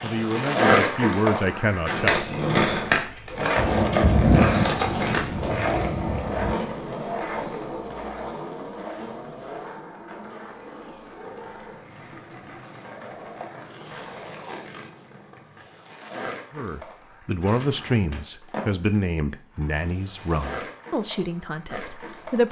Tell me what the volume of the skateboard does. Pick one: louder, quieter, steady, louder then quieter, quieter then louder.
quieter.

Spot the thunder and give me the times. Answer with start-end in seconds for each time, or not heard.
3.5-6.5.